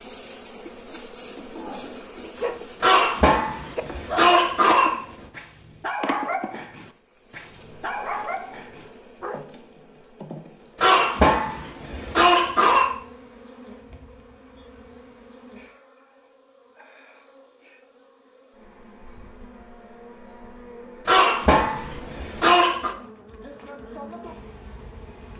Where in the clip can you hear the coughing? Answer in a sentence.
You can hear the coughing from 2.8 to 5.0 s, from 10.8 to 12.9 s and from 21.1 to 22.9 s.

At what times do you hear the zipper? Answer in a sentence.
The zipper can't be heard in this clip.